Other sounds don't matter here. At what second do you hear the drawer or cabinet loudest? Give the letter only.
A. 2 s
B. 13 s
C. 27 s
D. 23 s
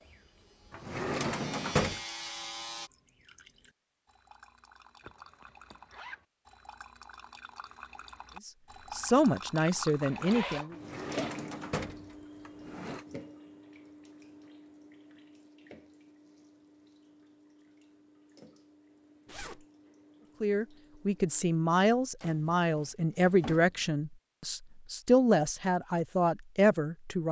A.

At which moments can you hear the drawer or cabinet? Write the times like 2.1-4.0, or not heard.
0.7-2.0, 10.7-13.1, 22.2-24.0.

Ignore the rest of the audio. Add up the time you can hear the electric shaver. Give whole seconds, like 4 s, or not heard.
3 s.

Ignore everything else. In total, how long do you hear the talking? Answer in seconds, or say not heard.
9 s.